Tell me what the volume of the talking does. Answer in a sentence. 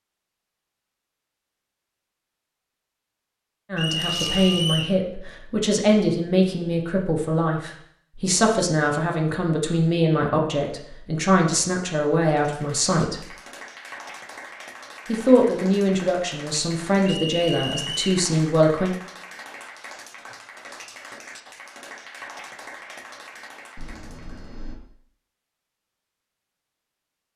The loudness of the talking stays about the same.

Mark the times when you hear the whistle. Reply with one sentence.
The whistle can be heard from 3.8 to 5.0 s and from 17.1 to 18.0 s.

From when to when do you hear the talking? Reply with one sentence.
The talking can be heard from 3.7 to 13.2 s and from 15.1 to 18.9 s.